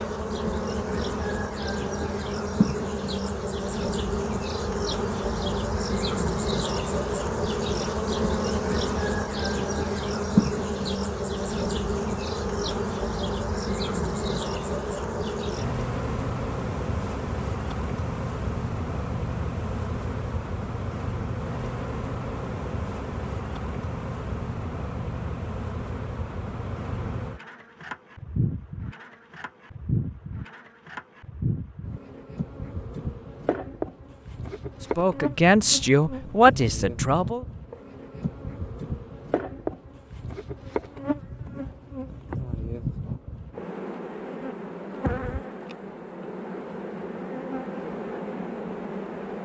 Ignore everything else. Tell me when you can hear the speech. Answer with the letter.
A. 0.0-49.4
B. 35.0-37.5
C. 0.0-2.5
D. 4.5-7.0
B.